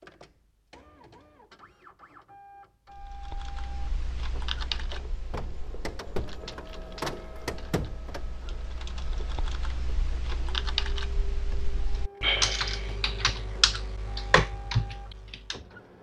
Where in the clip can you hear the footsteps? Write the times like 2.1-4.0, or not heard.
not heard.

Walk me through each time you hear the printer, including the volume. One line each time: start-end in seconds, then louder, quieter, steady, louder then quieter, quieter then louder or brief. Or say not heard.
0.0-15.9 louder then quieter.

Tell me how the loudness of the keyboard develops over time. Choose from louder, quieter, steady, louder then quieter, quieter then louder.
quieter then louder.